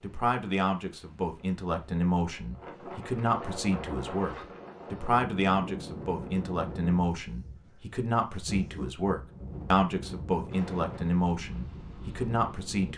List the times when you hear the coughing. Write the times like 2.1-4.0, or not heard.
not heard.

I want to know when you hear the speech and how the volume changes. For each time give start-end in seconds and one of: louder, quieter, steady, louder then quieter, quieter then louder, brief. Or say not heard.
0.0-12.9 steady.